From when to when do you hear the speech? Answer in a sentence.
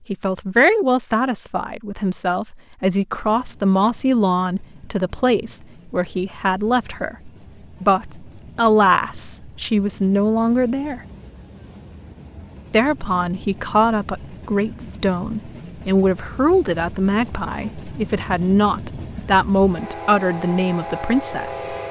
The speech can be heard from 0.1 to 11.0 s and from 12.7 to 21.8 s.